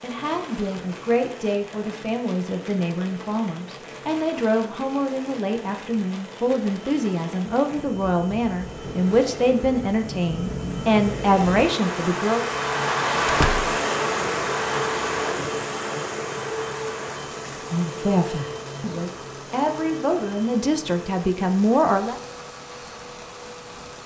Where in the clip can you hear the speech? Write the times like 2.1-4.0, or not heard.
0.0-12.4, 17.7-22.1.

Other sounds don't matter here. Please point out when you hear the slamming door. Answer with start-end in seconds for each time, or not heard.
13.2-13.7.